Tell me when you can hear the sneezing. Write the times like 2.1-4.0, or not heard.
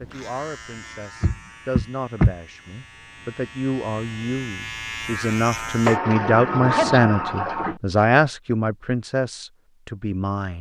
6.7-7.2.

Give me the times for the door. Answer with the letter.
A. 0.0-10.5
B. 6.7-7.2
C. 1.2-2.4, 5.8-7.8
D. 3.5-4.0
C.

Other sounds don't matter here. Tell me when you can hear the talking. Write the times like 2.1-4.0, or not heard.
0.0-10.5.